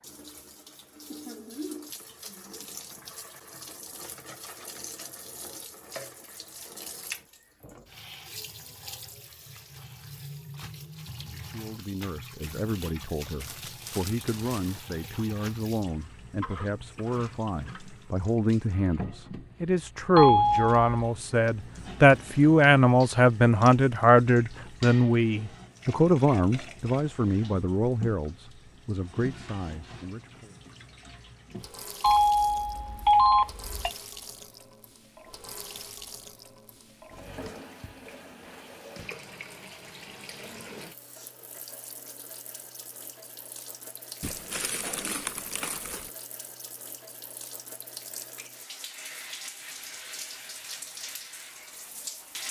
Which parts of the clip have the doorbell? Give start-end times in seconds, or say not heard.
20.1-21.1, 32.0-33.9.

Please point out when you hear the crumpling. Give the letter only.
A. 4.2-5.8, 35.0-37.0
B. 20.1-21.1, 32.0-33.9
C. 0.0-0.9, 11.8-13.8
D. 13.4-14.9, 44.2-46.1
D.